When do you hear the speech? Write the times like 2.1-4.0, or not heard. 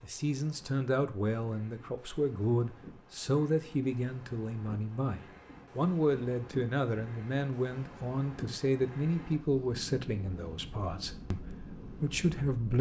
0.0-12.7.